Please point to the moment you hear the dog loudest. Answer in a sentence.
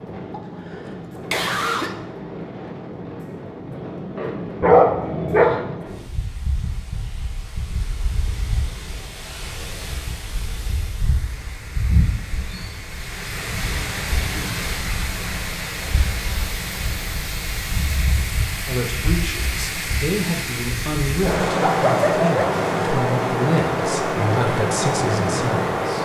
The volume of the dog peaks at 5 seconds.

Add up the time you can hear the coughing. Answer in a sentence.
The coughing can be heard for 2 seconds in total.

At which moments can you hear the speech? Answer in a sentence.
The speech can be heard from 18.6 to 26.0 s.